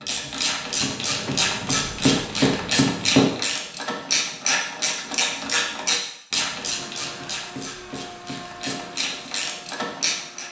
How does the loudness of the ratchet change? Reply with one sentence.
The volume of the ratchet goes down.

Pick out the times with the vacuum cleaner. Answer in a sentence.
The vacuum cleaner can be heard from 6.5 to 10.4 s.